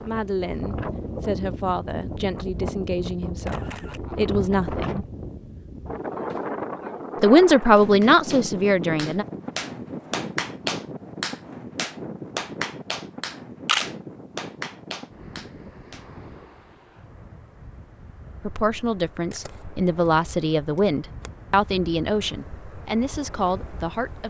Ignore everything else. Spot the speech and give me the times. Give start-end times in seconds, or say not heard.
0.0-5.0, 7.2-9.2, 18.4-24.2.